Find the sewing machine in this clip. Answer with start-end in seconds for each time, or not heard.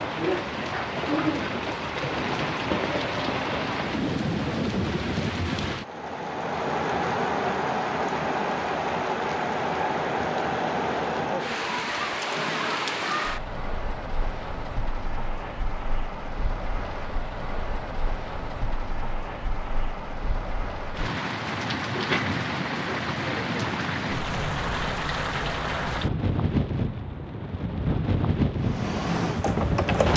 28.6-30.1.